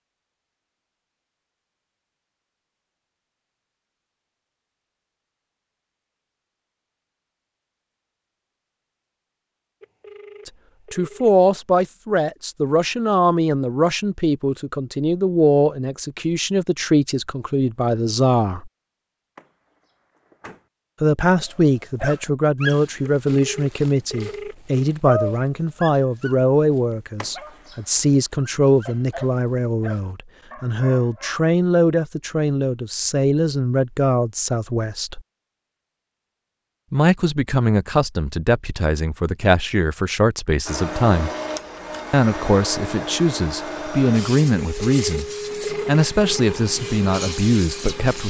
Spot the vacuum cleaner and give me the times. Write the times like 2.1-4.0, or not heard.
40.6-48.2.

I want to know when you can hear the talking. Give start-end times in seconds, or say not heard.
10.4-18.7, 21.0-35.2, 36.9-41.3, 42.1-45.2, 45.9-48.2.